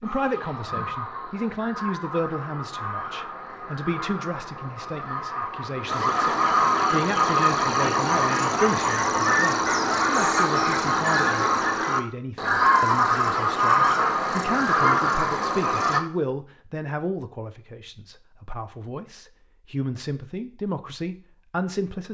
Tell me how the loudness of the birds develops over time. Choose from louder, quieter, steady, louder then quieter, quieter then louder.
louder.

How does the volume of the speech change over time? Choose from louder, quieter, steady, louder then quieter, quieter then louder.
steady.